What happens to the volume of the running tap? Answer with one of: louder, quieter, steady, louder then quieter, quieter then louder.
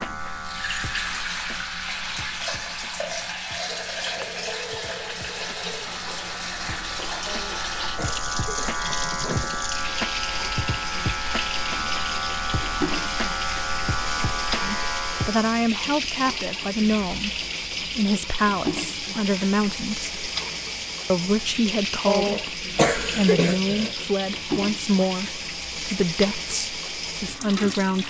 steady.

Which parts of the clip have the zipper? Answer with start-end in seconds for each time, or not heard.
not heard.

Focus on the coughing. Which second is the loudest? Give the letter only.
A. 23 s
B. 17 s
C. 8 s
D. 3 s
A.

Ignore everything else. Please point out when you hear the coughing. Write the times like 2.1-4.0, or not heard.
7.2-8.8, 22.1-23.9.